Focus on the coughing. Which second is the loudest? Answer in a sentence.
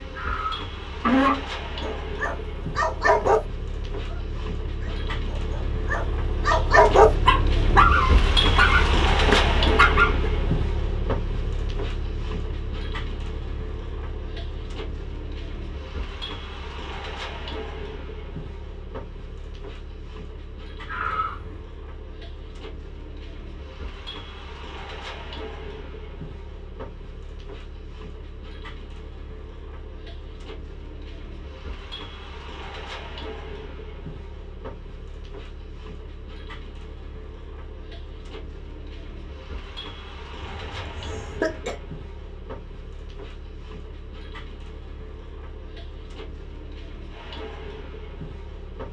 The volume of the coughing peaks at 1 second.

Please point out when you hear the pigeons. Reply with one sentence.
You can't hear the pigeons here.